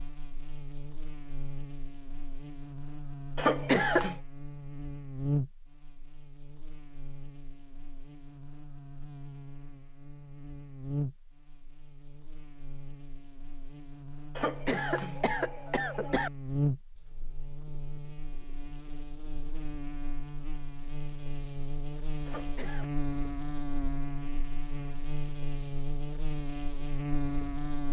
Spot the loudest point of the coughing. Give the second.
4 s.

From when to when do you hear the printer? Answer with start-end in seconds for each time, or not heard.
not heard.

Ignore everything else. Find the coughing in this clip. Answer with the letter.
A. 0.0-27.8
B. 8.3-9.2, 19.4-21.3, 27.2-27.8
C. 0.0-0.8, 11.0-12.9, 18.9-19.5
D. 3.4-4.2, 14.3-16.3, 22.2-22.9
D.